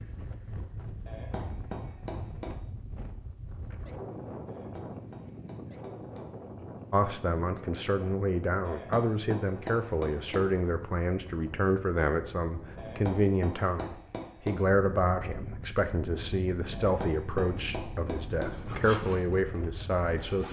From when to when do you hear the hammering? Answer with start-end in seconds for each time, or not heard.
1.1-2.5, 4.5-6.3, 8.7-10.6, 12.8-14.7, 16.7-18.6.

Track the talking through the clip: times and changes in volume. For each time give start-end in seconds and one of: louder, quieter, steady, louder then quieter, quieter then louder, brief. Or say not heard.
6.9-20.4 steady.